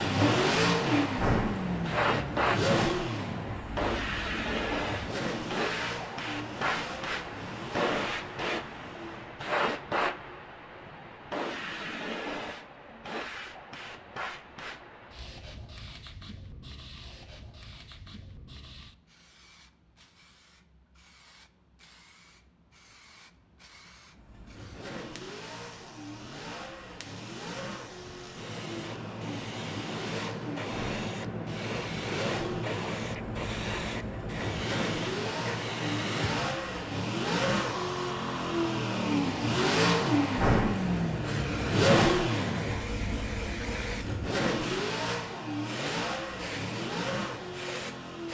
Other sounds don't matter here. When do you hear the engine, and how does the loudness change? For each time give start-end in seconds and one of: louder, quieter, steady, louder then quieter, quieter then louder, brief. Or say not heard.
0.0-9.3 quieter
24.1-48.3 louder then quieter.